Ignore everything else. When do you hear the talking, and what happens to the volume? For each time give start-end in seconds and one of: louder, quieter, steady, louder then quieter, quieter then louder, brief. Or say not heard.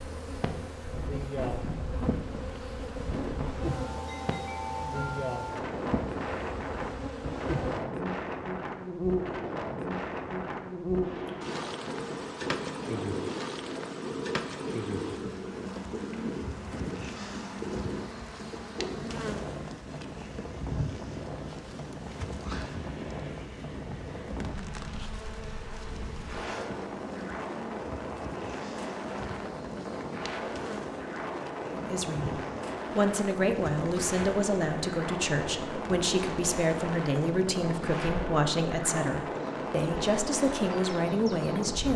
31.7-41.9 steady.